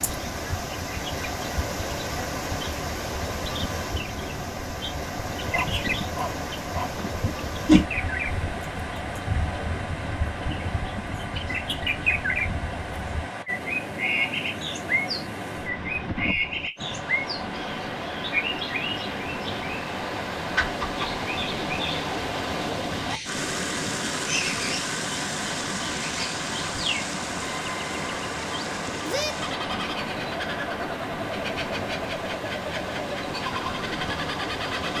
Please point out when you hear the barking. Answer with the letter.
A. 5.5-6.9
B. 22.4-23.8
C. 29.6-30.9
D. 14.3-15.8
A.